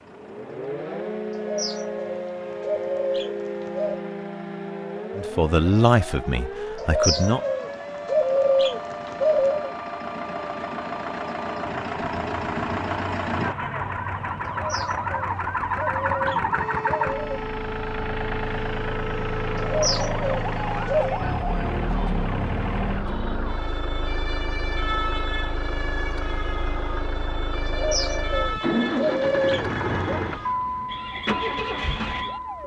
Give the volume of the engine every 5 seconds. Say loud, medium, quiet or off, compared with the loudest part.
quiet, quiet, loud, loud, loud, loud, loud.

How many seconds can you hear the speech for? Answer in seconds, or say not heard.
2 s.